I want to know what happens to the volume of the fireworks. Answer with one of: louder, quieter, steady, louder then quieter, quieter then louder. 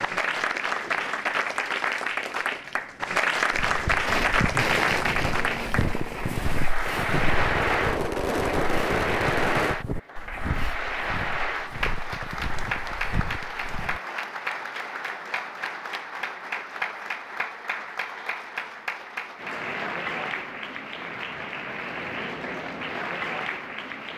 quieter then louder.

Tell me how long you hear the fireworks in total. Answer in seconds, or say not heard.
6 s.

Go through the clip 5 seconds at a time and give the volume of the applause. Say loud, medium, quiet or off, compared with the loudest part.
loud, loud, medium, medium, medium.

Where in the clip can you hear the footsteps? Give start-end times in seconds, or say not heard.
3.5-14.0.